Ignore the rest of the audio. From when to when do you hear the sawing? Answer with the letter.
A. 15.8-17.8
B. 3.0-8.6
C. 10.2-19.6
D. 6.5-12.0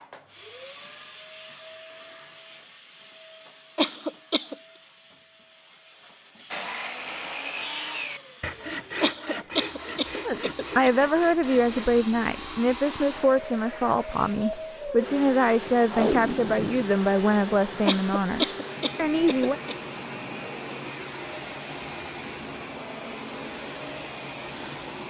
D.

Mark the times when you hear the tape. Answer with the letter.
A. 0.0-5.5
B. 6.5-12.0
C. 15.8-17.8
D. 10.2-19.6
C.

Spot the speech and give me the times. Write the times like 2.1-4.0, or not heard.
10.2-19.6.